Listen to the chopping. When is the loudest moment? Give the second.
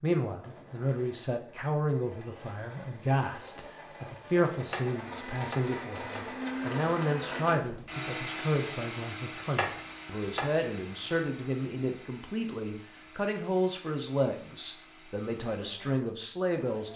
10 s.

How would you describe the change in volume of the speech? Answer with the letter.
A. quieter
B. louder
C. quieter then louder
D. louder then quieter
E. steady
E.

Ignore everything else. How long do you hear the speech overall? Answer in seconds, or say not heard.
17 s.